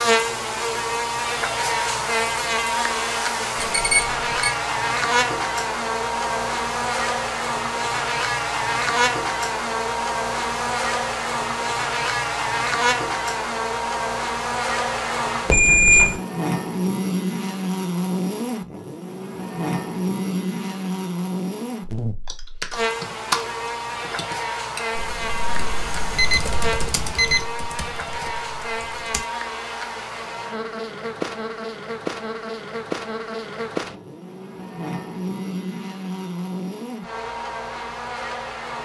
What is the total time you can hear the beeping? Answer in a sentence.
You can hear the beeping for 3 seconds altogether.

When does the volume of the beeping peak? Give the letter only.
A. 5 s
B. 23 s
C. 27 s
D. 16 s
D.